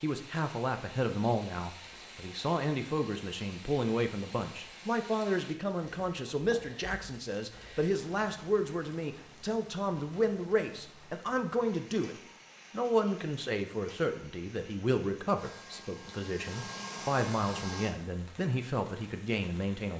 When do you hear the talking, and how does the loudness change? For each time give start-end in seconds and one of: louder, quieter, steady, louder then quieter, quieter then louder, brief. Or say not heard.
0.0-19.9 steady.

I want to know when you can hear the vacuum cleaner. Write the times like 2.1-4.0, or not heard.
15.3-17.9.